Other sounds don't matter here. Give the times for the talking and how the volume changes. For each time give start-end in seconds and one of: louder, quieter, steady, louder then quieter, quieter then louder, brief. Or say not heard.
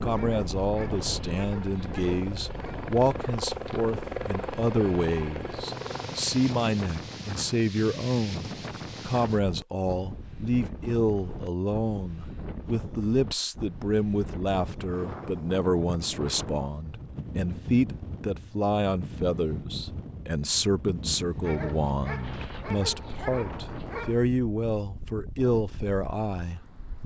0.0-27.0 steady.